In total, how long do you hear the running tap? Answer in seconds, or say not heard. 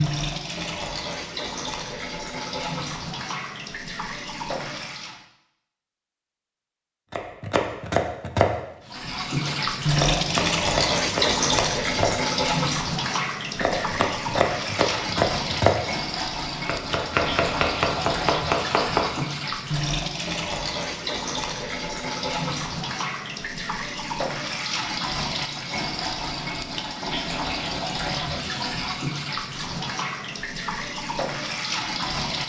29 s.